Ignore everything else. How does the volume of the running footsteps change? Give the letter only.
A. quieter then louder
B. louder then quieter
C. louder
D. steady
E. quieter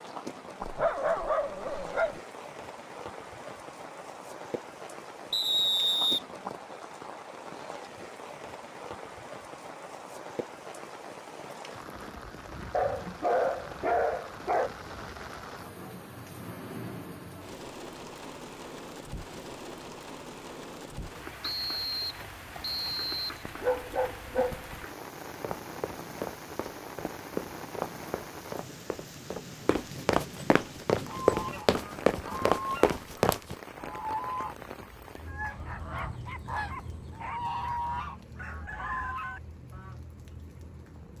C.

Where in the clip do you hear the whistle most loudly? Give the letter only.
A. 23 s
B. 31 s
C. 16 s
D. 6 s
D.